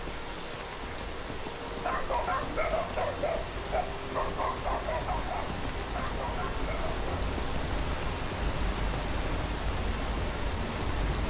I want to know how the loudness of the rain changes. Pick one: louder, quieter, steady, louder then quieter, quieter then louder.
steady.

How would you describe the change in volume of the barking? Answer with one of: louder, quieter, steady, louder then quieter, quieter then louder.
quieter.